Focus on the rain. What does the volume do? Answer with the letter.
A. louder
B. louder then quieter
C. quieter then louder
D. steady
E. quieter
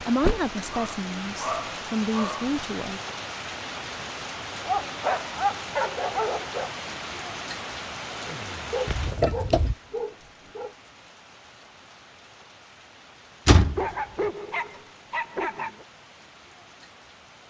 E.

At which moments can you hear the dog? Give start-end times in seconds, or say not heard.
0.7-2.5, 4.7-6.7, 8.7-10.8, 13.8-15.8.